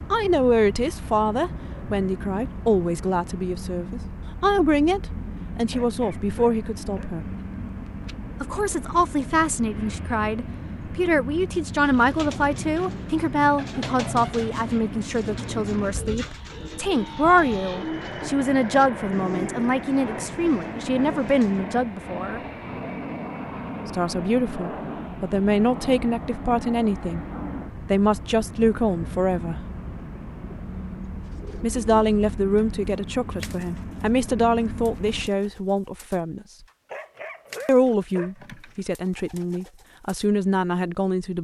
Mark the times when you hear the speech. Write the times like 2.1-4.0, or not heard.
0.1-7.3, 8.4-22.4, 23.9-27.2, 27.9-29.6, 31.6-36.5, 37.6-41.3.